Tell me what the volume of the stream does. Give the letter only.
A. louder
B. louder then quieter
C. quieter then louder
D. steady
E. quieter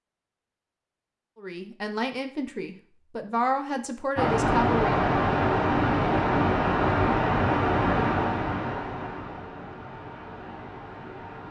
E.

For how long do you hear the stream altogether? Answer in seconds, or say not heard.
7 s.